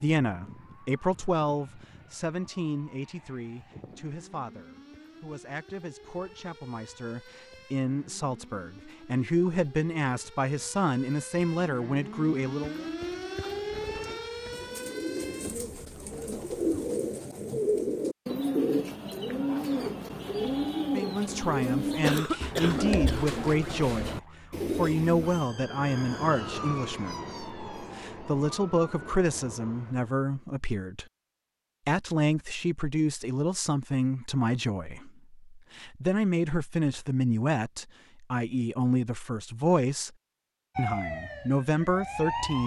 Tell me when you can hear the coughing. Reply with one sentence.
You can hear the coughing from 22.0 to 23.2 s.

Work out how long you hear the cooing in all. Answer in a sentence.
The cooing can be heard for 12 seconds in total.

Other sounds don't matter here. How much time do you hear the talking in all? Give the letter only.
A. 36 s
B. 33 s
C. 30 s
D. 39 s
B.